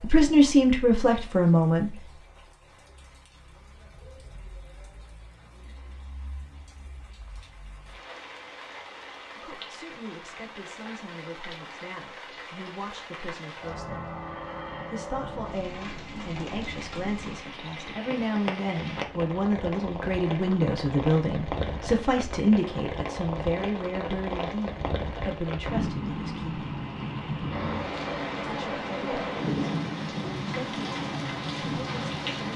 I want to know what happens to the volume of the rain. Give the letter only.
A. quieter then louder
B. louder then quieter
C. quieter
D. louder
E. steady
D.